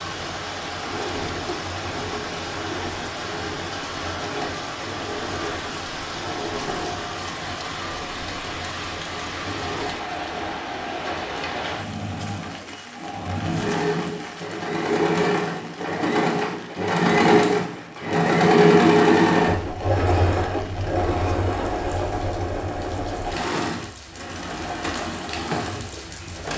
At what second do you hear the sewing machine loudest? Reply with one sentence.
The loudest moment of the sewing machine is at 19 seconds.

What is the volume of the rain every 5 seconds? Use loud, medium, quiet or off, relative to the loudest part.
loud, loud, loud, quiet, medium, loud.